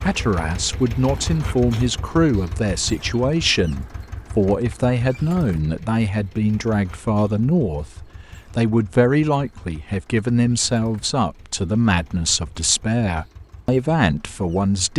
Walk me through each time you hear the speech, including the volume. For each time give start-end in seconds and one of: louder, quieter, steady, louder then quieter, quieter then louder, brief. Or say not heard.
0.0-14.9 steady.